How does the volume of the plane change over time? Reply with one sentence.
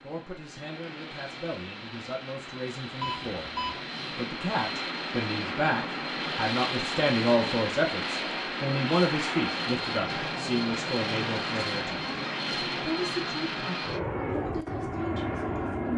The volume of the plane goes up.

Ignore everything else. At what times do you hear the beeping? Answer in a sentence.
You can hear the beeping from 3.0 to 3.8 s.